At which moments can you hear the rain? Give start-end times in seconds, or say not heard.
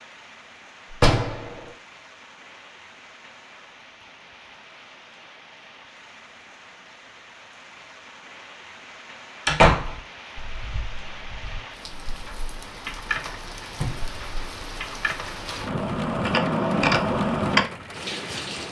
0.0-18.6.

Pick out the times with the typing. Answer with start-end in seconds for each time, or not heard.
10.3-17.6.